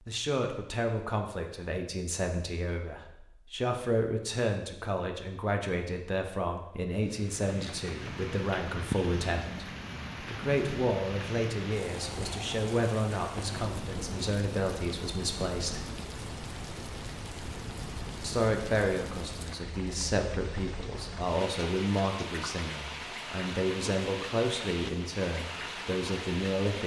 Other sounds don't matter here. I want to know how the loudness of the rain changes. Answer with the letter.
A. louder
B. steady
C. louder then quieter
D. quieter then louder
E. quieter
B.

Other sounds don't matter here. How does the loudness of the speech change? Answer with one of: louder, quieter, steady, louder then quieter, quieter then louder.
steady.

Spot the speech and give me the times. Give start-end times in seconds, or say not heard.
0.1-15.9, 18.2-26.8.